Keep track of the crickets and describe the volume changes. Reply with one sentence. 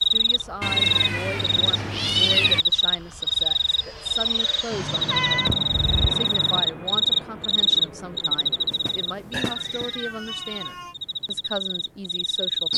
The volume of the crickets goes down.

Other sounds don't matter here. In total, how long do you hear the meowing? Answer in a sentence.
The meowing can be heard for 6 seconds in total.